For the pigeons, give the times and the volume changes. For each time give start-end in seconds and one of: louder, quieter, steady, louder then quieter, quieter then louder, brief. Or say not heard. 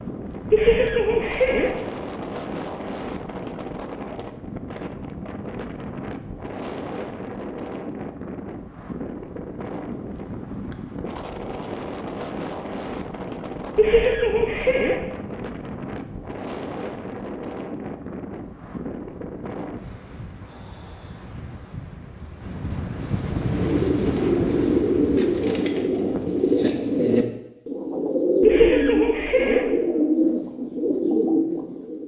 23.4-32.0 steady.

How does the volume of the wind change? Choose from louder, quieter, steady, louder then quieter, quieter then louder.
steady.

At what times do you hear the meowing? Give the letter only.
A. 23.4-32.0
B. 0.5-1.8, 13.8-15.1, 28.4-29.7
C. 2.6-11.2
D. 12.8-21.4
B.